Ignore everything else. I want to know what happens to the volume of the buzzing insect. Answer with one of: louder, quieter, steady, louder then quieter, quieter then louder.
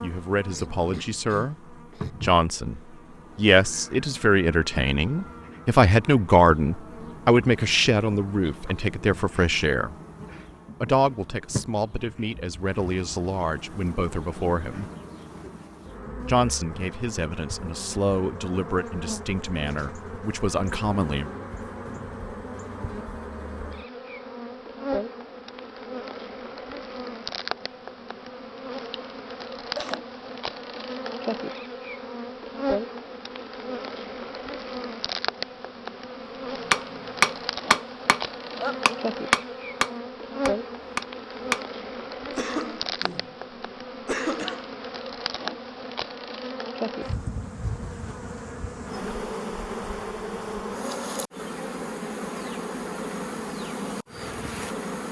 louder.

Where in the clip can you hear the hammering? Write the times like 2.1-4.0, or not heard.
36.7-41.6.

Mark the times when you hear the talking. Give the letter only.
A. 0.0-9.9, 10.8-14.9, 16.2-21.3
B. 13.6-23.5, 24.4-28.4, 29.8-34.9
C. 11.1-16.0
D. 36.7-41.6
A.